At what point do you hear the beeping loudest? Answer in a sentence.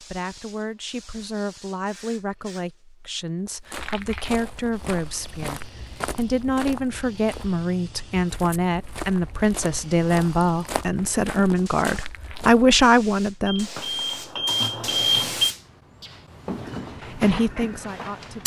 The volume of the beeping peaks at 15 seconds.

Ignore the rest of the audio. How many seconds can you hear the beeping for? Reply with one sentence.
The beeping can be heard for 2 seconds in total.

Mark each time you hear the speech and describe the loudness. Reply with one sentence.
You can hear the speech from 0.0 to 13.7 s, getting louder; and briefly from 17.1 to 18.4 s.